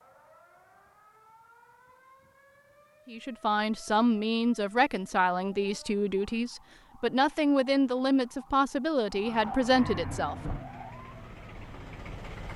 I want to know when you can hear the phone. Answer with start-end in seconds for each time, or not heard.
not heard.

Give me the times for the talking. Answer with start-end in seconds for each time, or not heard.
3.0-10.3.